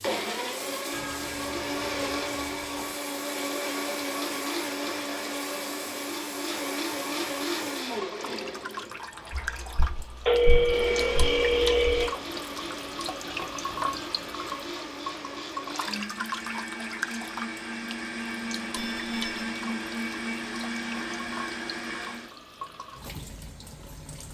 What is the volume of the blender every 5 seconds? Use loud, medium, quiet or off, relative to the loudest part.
loud, loud, medium, loud, loud.